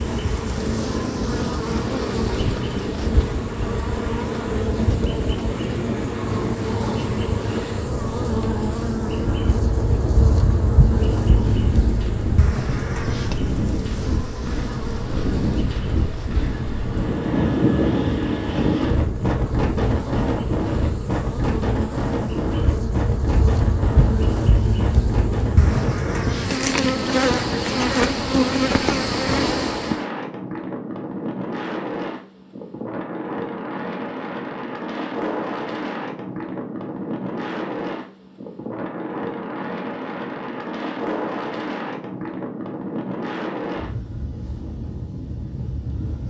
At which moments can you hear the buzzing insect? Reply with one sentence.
You can hear the buzzing insect from 0.0 to 30.0 s.